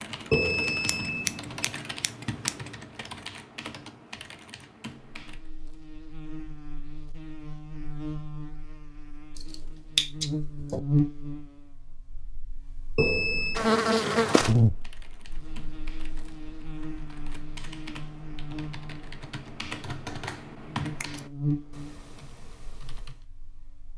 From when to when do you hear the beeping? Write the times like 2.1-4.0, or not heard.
0.3-1.6, 12.9-13.6.